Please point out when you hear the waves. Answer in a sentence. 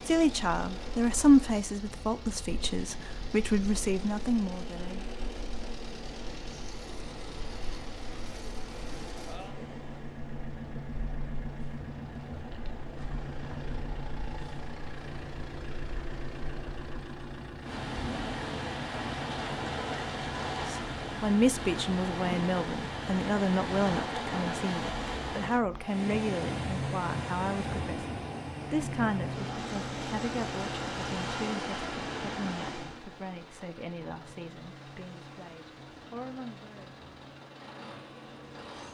You can hear the waves from 0.0 to 38.8 s.